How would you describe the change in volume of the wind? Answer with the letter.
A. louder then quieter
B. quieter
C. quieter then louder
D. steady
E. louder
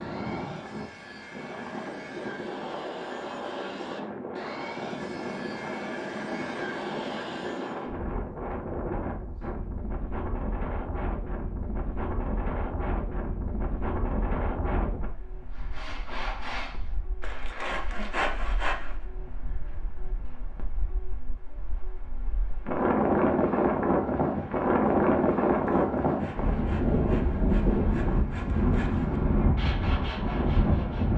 E.